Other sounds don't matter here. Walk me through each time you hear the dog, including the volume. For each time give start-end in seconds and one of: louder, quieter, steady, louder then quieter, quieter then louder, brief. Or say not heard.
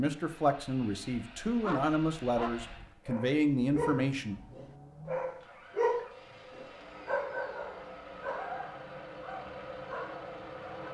1.6-10.8 louder then quieter.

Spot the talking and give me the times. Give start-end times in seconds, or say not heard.
0.0-4.3.